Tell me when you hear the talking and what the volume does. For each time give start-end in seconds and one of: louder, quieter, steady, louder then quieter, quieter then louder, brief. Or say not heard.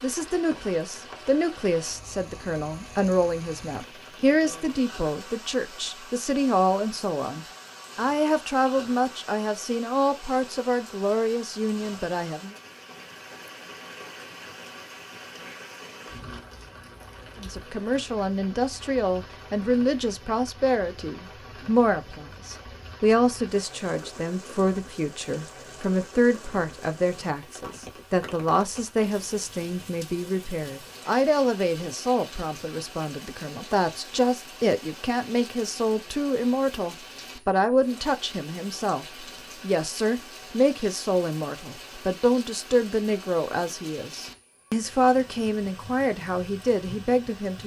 0.0-12.6 steady
17.4-47.6 steady.